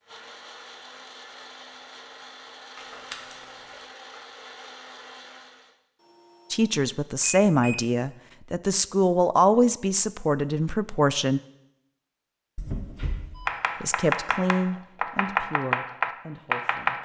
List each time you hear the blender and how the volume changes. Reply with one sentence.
The blender can be heard from 0.0 to 5.8 s, at a steady volume.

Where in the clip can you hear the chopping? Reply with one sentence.
The chopping can be heard from 13.4 to 17.0 s.